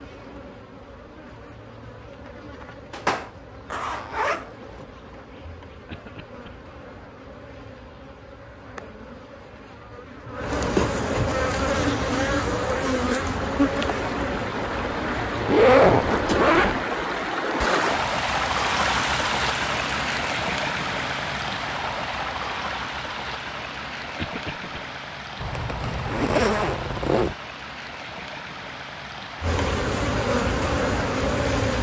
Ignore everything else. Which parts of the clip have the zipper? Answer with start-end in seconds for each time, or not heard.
2.9-4.5, 15.4-16.8, 25.4-27.4.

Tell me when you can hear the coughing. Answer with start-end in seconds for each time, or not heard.
5.8-6.5, 24.1-24.8.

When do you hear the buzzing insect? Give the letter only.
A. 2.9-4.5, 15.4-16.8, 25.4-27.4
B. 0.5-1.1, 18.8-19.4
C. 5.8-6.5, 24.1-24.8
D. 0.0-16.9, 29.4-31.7
D.